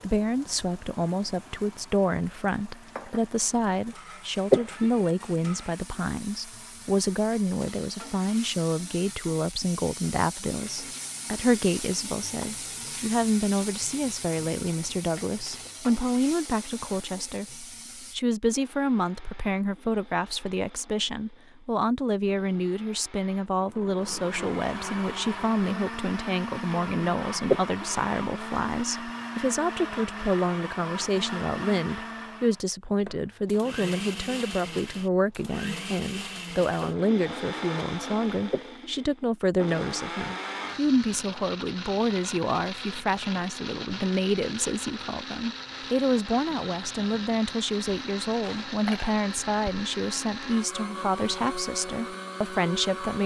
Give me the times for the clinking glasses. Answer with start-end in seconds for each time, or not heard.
48.4-49.1.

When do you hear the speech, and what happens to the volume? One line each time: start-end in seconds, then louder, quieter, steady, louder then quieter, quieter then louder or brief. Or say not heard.
0.0-53.2 steady.